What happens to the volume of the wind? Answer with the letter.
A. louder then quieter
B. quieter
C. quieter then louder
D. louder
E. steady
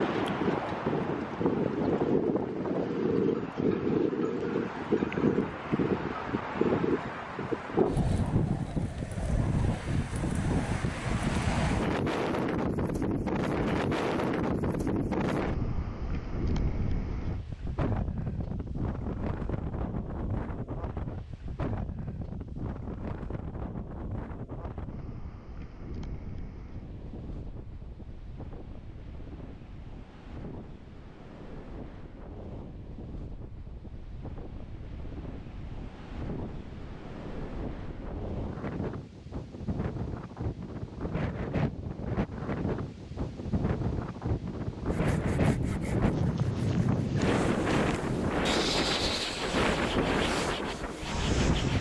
C.